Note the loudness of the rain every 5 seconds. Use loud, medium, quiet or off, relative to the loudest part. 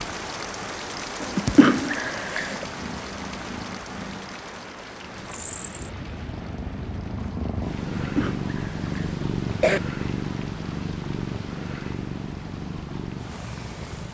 loud, medium, medium.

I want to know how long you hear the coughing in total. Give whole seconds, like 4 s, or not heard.
3 s.